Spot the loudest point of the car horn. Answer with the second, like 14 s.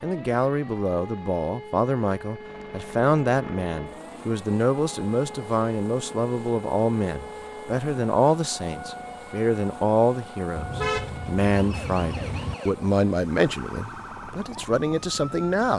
11 s.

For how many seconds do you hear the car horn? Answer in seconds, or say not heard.
2 s.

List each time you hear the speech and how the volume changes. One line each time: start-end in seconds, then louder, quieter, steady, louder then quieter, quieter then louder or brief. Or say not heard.
0.0-15.7 steady.